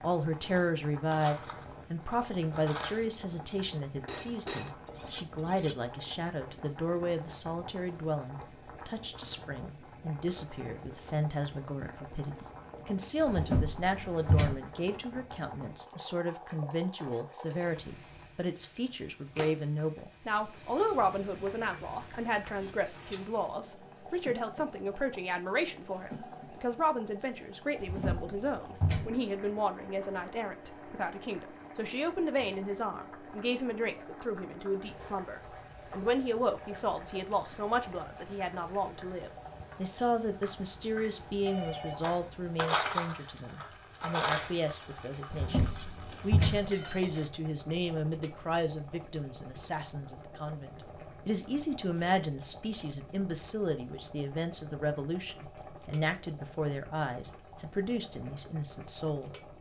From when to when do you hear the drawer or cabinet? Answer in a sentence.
The drawer or cabinet can be heard from 13.2 to 14.6 s, from 27.8 to 29.2 s and from 45.3 to 46.7 s.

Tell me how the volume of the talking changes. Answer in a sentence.
The loudness of the talking stays about the same.